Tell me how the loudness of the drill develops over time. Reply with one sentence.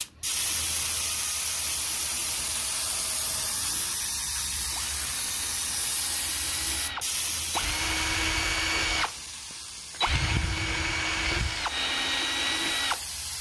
The loudness of the drill goes up.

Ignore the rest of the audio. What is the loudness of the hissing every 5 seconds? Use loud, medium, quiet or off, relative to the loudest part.
loud, loud, medium.